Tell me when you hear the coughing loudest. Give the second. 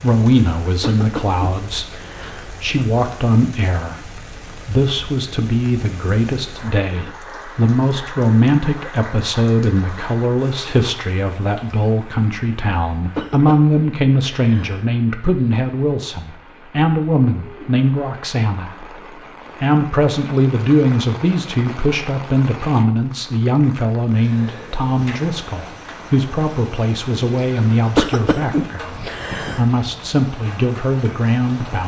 28 s.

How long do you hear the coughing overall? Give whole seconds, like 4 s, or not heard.
5 s.